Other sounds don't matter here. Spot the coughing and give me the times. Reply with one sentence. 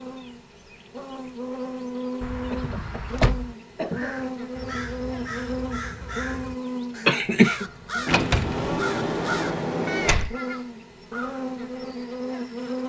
The coughing can be heard from 2.5 to 4.2 s and from 7.0 to 7.7 s.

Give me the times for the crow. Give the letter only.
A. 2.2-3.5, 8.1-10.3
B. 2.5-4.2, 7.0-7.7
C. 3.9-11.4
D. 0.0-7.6
C.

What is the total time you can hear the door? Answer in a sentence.
The door can be heard for 4 seconds in total.